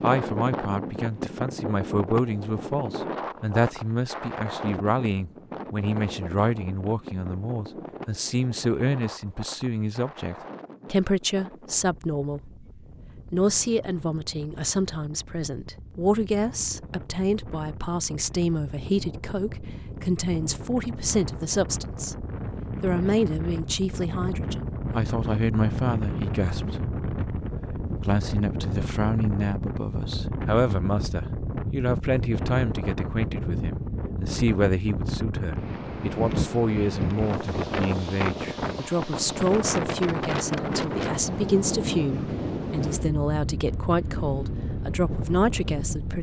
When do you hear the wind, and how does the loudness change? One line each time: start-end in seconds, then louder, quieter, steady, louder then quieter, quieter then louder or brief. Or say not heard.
0.0-46.1 quieter then louder.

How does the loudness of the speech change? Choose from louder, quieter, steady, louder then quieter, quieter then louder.
steady.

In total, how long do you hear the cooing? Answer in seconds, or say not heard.
not heard.